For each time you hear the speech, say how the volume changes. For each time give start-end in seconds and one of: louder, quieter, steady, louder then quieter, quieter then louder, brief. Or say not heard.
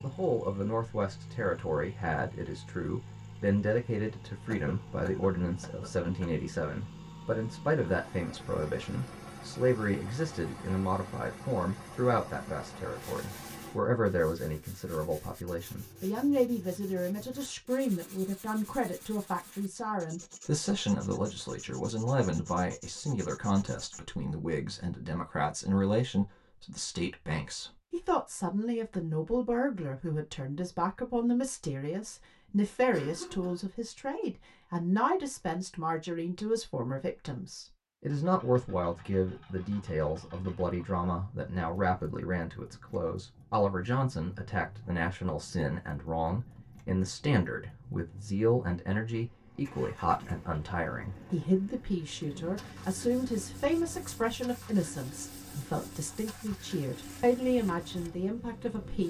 0.0-59.0 steady.